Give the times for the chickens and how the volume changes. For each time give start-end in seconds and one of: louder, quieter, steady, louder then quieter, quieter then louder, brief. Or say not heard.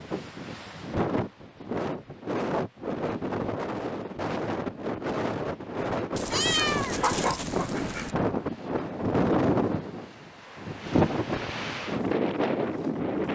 not heard.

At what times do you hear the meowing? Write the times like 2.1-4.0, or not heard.
6.2-8.2.